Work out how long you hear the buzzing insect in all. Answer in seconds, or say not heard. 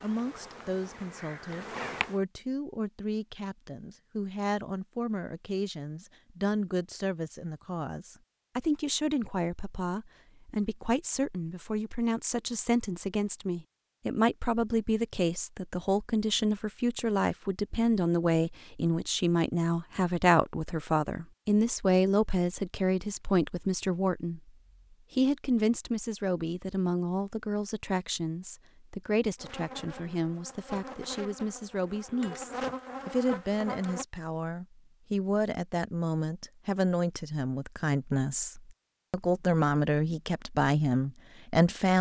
7 s.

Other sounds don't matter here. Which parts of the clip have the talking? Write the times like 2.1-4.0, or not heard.
0.0-24.4, 25.1-41.9.